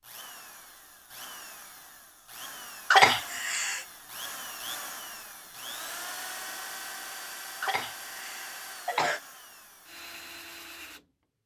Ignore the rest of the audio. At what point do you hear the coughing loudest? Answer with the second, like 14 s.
3 s.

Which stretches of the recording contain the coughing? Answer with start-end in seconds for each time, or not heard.
2.9-3.9, 7.6-9.2.